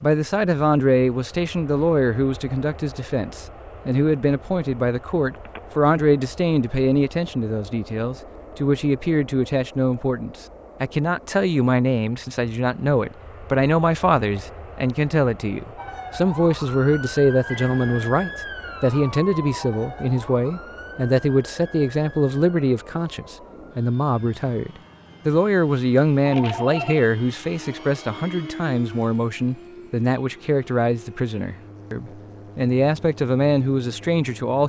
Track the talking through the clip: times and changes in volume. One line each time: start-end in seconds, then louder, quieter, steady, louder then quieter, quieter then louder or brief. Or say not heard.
0.0-34.6 steady.